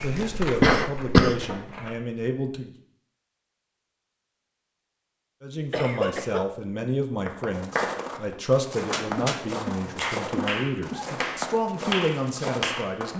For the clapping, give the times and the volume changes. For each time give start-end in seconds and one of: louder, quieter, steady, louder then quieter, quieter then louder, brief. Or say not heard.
7.2-13.0 quieter then louder.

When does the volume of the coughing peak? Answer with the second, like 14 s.
1 s.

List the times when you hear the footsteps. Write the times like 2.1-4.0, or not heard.
0.0-2.0, 7.5-13.1.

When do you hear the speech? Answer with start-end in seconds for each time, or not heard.
0.0-2.7, 5.4-13.1.